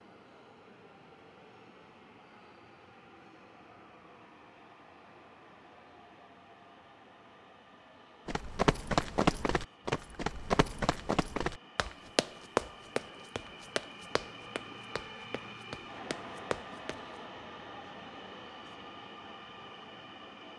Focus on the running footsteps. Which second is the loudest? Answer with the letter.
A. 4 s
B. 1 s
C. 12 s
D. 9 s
D.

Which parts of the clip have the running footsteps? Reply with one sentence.
You can hear the running footsteps from 8.2 to 17.0 s.